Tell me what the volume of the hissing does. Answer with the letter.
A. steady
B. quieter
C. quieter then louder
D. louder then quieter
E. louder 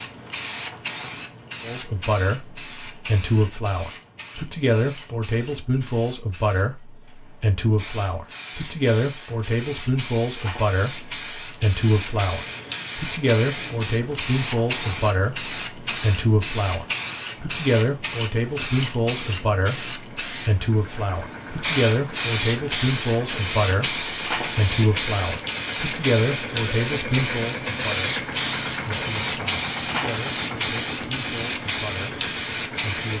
E.